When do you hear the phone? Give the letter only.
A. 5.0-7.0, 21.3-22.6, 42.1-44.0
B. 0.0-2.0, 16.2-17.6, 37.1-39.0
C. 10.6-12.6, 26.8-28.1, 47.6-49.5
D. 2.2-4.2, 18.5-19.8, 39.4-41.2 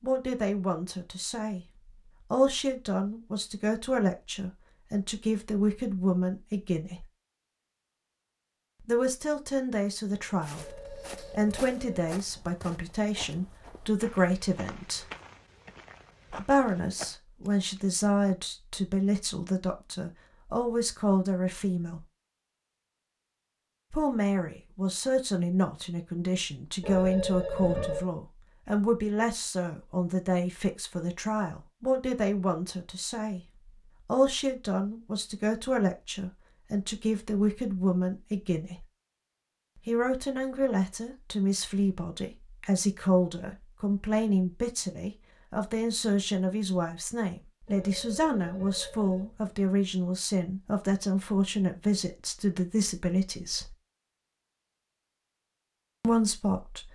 C.